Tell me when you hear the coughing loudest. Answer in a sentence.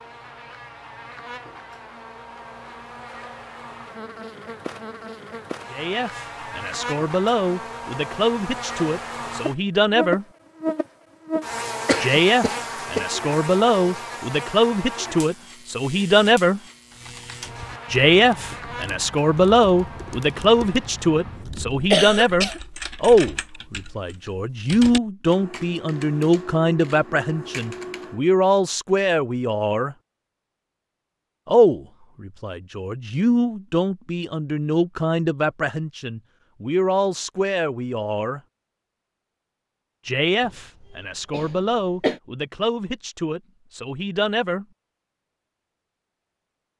The loudest moment of the coughing is at 22 seconds.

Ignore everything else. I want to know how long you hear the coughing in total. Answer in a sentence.
You can hear the coughing for 3 seconds altogether.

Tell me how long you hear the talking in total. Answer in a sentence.
The talking can be heard for 33 seconds in total.